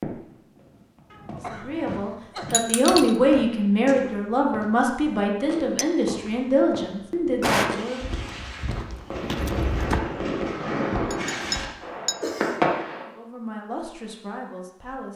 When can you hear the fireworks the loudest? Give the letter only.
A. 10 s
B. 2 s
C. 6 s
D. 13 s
D.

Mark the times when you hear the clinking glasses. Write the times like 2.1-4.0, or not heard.
2.5-3.1, 11.1-12.3.